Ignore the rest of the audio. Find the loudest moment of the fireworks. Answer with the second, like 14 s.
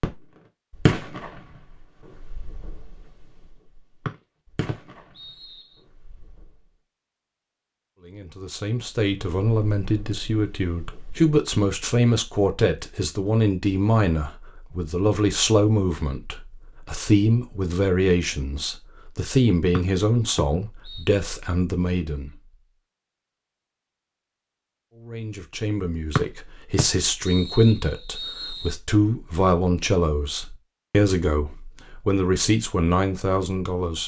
1 s.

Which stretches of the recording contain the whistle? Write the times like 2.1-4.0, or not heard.
4.0-5.8, 19.8-21.1, 26.1-28.8.